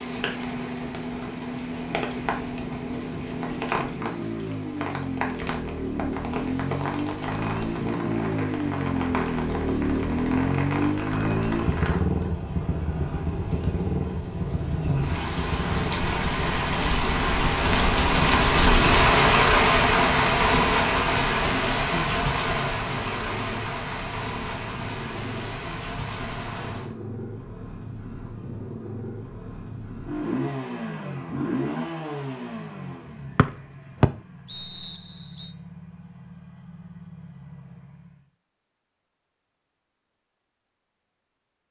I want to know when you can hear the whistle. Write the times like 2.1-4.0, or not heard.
33.4-35.5.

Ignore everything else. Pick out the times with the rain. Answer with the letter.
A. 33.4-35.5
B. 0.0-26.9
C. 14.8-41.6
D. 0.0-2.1
B.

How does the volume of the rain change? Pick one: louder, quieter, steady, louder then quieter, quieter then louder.
louder then quieter.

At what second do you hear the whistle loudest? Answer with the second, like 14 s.
34 s.